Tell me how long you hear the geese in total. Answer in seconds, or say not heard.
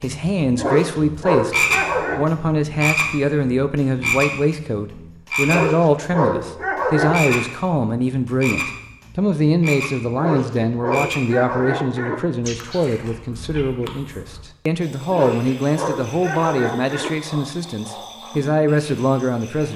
not heard.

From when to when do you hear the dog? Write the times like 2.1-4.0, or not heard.
0.6-2.2, 5.5-7.5, 10.2-12.2, 15.1-17.1.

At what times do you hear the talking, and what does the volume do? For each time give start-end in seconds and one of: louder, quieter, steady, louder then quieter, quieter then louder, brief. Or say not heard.
0.0-19.7 steady.